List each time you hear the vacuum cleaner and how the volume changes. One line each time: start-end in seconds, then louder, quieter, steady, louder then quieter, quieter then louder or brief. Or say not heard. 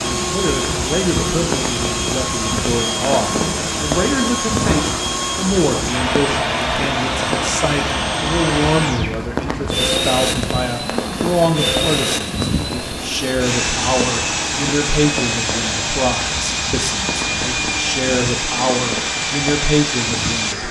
0.0-20.6 steady.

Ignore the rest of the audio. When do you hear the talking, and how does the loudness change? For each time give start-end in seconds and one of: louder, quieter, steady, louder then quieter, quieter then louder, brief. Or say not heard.
0.2-20.6 steady.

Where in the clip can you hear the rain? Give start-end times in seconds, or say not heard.
0.0-20.6.